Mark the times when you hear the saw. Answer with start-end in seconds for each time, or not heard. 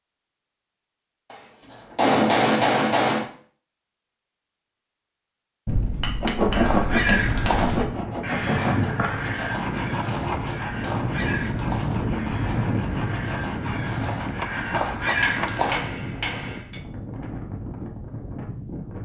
6.2-15.5.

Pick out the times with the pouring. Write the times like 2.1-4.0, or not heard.
not heard.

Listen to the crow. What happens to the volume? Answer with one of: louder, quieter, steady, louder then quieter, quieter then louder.
quieter then louder.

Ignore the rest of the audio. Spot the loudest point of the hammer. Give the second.
2 s.